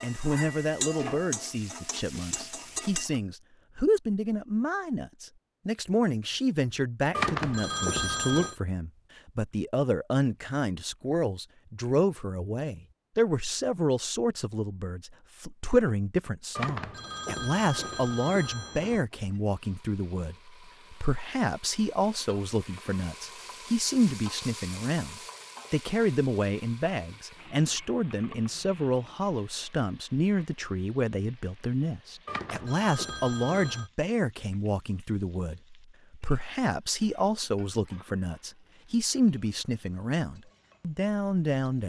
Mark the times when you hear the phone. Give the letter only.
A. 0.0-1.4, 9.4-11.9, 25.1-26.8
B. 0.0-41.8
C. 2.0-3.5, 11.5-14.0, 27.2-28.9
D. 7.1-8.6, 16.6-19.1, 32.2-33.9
D.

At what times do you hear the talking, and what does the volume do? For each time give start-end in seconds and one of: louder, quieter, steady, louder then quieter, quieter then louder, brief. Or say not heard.
0.0-41.8 steady.